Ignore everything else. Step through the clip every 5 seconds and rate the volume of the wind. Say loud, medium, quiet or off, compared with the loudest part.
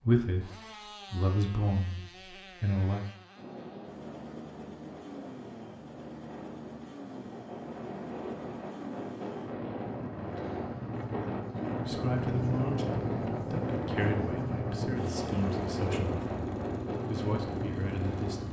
medium, medium, loud, loud.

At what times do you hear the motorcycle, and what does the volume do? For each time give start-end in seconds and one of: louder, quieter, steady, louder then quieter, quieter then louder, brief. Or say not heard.
0.2-18.4 louder.